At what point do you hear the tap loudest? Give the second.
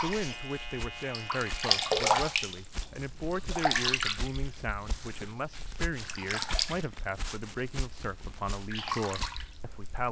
2 s.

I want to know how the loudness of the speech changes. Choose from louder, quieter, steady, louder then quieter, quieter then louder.
steady.